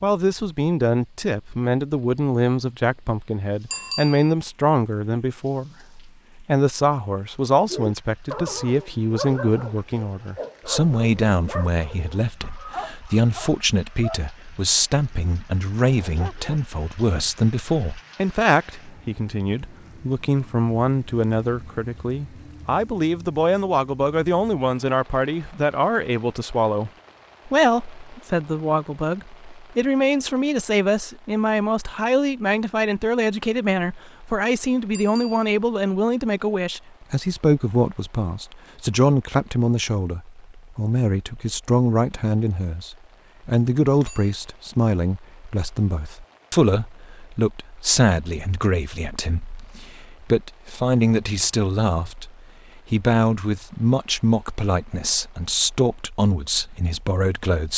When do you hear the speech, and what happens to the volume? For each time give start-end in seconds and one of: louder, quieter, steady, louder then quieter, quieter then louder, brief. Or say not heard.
0.0-57.7 steady.